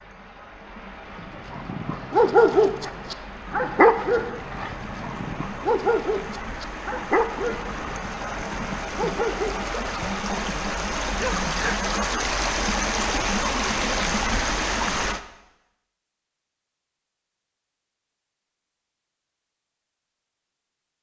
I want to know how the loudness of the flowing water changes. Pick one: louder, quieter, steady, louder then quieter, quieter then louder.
louder.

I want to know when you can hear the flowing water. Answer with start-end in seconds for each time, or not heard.
0.0-15.2.